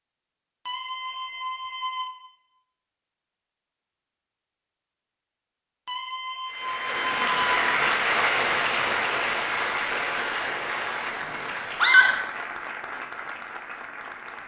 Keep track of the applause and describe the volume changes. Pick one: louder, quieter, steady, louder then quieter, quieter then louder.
quieter.